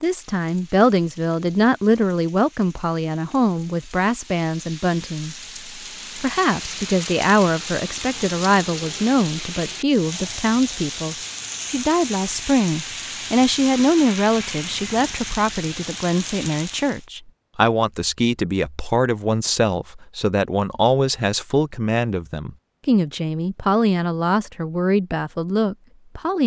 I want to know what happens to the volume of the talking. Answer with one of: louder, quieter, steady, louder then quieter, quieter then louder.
steady.